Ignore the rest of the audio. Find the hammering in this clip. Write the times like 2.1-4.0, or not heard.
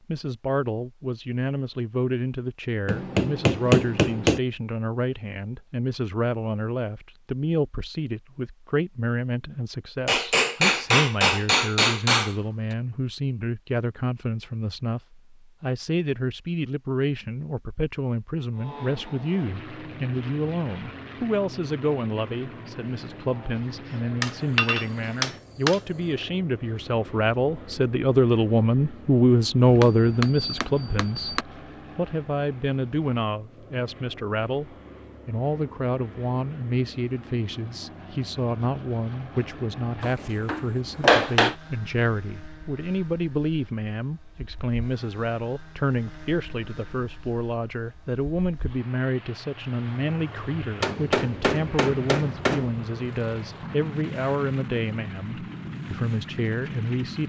2.9-4.4, 10.1-12.3, 24.2-25.8, 29.6-31.4, 40.0-41.5, 50.8-52.7.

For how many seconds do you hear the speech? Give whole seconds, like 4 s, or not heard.
57 s.